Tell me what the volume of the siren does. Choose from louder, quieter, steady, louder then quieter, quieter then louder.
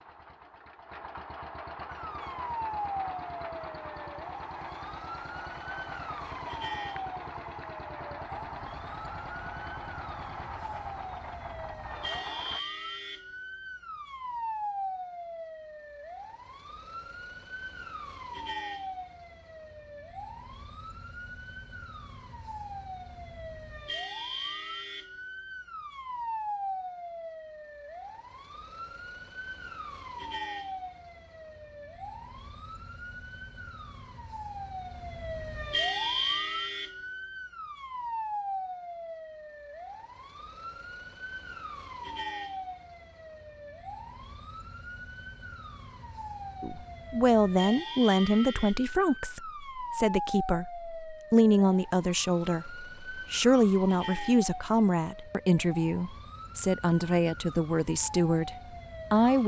steady.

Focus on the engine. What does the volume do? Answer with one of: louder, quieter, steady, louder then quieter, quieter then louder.
steady.